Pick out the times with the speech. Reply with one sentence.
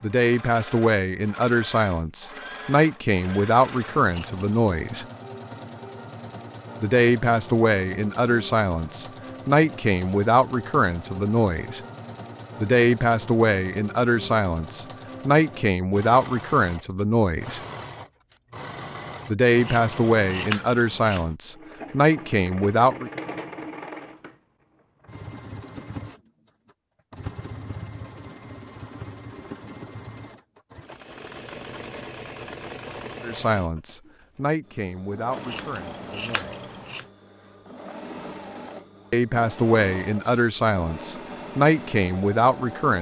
The speech can be heard from 0.0 to 5.0 s, from 6.8 to 11.8 s, from 12.6 to 17.6 s, from 19.2 to 23.1 s, from 33.2 to 36.5 s and from 39.1 to 42.9 s.